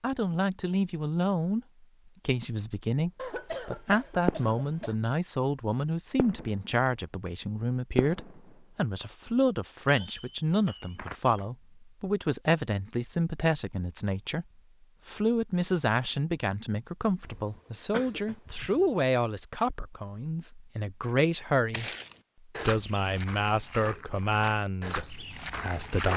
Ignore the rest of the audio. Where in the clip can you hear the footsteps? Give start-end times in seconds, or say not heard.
21.7-26.1.